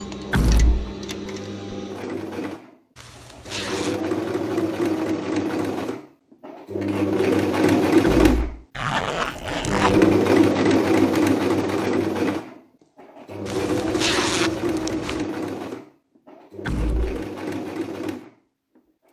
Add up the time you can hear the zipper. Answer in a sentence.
The zipper can be heard for 4 seconds in total.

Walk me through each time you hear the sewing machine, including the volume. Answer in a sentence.
The sewing machine can be heard from 0.0 to 18.8 s, getting louder then quieter.